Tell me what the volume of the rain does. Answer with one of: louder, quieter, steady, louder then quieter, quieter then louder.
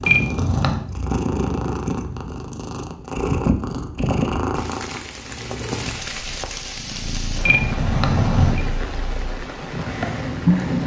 steady.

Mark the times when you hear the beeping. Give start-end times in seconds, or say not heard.
0.1-0.8, 7.4-8.6.